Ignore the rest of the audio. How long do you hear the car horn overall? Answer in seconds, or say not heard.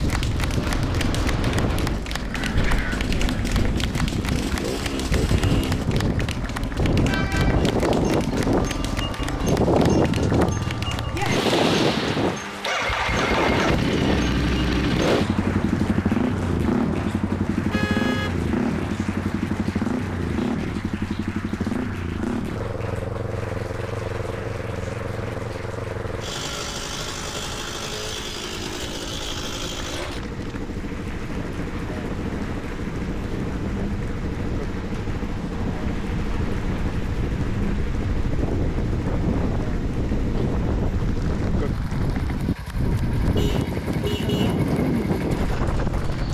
3 s.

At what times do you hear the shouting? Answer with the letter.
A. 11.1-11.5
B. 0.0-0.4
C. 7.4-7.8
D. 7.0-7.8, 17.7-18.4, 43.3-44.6
A.